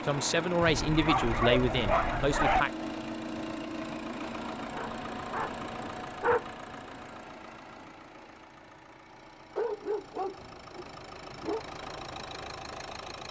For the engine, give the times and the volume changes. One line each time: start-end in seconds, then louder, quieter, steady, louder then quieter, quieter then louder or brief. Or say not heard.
0.0-13.2 quieter then louder.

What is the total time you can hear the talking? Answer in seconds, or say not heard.
3 s.